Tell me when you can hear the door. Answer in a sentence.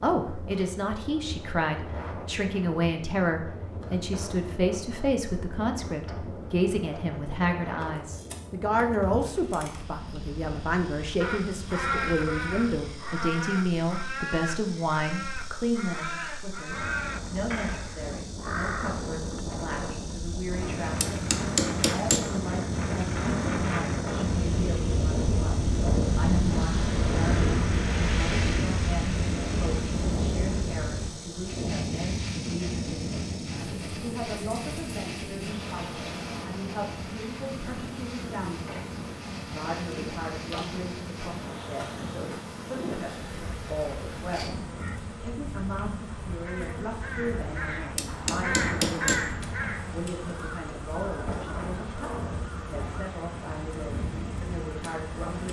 The door can't be heard in this clip.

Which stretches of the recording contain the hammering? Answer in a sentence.
You can hear the hammering from 20.5 to 22.3 s and from 47.5 to 49.3 s.